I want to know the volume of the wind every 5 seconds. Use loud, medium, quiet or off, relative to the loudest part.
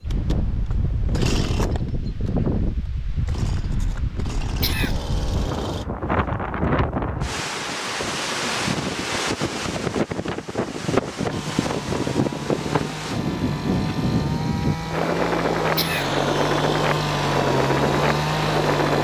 medium, loud, loud, loud.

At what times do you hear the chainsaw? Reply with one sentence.
The chainsaw can be heard from 0.0 to 5.8 s and from 11.3 to 19.0 s.